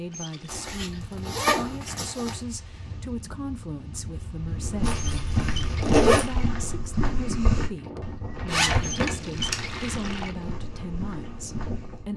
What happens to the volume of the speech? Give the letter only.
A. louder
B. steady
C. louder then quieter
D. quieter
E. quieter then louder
B.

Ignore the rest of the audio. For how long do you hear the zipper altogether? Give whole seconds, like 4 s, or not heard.
5 s.